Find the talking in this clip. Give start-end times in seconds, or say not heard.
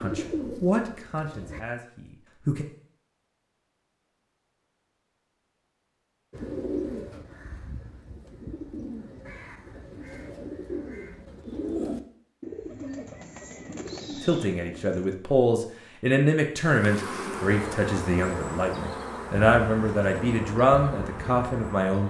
0.0-2.6, 14.2-22.0.